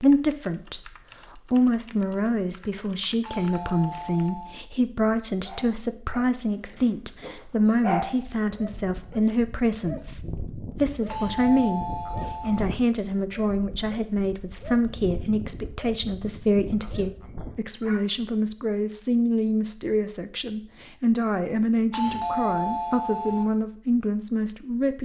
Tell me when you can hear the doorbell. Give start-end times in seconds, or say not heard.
3.2-4.5, 11.1-12.6, 21.9-23.4.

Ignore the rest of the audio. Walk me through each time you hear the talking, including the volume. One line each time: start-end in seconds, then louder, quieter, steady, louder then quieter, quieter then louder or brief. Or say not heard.
0.0-25.0 steady.